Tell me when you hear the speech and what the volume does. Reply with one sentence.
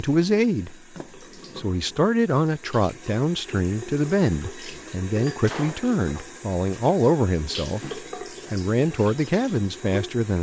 The speech can be heard briefly from 0.0 to 0.8 s; and from 1.6 to 10.3 s, at a steady volume.